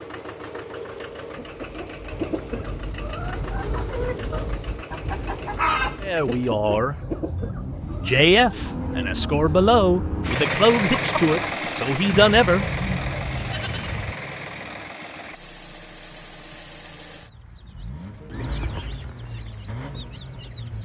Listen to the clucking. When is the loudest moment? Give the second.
6 s.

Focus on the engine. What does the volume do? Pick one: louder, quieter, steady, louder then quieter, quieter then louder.
louder then quieter.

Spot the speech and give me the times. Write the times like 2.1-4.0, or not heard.
6.0-7.0, 8.1-12.7.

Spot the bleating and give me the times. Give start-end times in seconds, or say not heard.
6.8-8.2, 12.1-14.2.